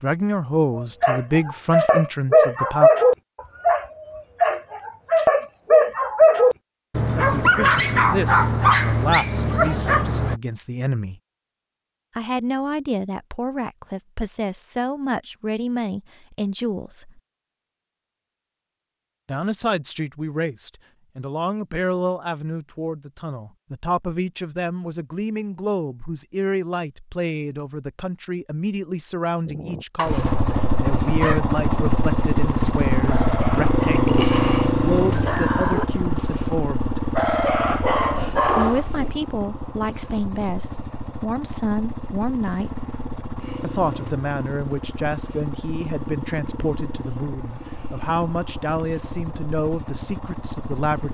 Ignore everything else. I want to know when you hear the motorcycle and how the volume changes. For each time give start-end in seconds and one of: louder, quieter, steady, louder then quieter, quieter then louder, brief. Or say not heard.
30.1-51.0 quieter.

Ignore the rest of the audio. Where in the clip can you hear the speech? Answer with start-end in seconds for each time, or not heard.
0.0-2.9, 7.2-11.2, 12.2-17.2, 19.2-37.0, 38.5-42.9, 43.6-51.0.